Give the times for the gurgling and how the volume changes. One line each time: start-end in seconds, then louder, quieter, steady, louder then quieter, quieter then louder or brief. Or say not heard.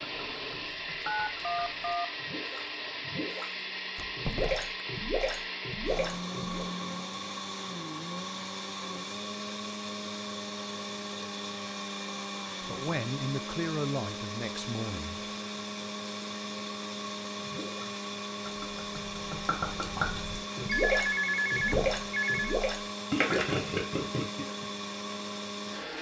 0.0-6.7 louder
17.4-24.6 louder.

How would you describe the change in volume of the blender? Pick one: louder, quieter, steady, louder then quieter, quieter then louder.
steady.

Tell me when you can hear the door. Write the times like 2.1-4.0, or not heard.
4.0-4.8, 21.7-22.1.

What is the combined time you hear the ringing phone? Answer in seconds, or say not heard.
3 s.